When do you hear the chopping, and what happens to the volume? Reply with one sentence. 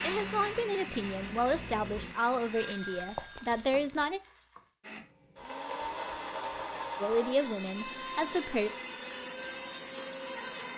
The chopping can't be heard in this clip.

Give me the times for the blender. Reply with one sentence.
The blender can be heard from 0.0 to 2.8 s and from 4.8 to 10.7 s.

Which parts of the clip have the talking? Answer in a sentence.
The talking can be heard from 0.0 to 4.2 s and from 7.0 to 8.7 s.